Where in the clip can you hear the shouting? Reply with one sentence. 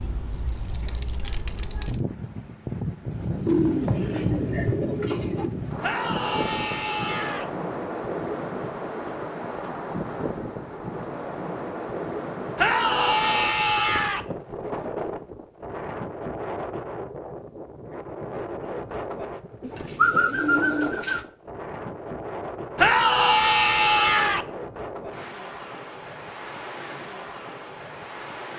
You can hear the shouting from 5.8 to 7.5 s, from 12.6 to 14.2 s and from 22.8 to 24.4 s.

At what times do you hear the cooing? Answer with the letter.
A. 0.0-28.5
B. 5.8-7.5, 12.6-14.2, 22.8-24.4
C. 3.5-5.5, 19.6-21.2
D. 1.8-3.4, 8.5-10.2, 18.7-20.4
C.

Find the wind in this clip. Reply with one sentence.
The wind can be heard from 0.0 to 28.5 s.